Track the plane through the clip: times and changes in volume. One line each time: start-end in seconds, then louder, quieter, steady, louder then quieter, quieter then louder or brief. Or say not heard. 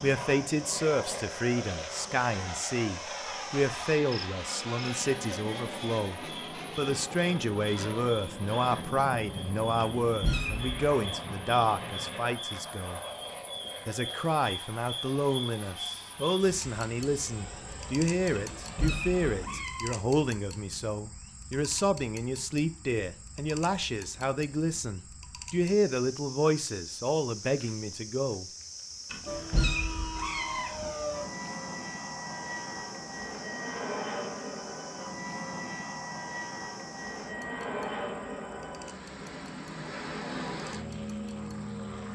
0.0-19.6 quieter
29.2-42.1 steady.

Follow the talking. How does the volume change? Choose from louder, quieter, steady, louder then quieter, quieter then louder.
steady.